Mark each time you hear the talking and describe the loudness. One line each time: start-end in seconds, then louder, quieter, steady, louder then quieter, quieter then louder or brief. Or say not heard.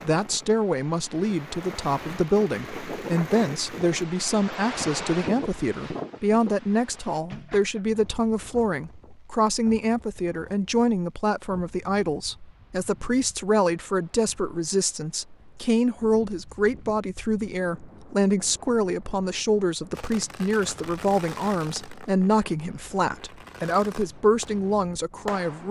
0.0-25.6 steady.